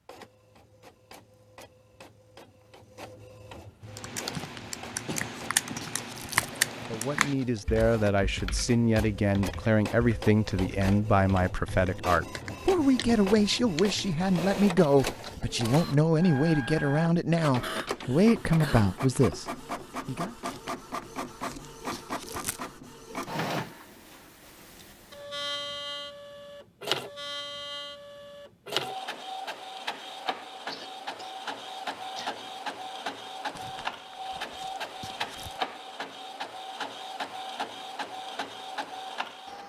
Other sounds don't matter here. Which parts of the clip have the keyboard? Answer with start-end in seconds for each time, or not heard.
3.9-14.0.